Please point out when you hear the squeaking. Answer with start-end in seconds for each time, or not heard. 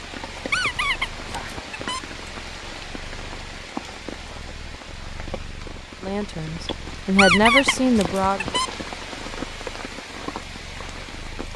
0.5-2.0, 7.2-8.7.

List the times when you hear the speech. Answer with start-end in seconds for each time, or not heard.
6.0-8.4.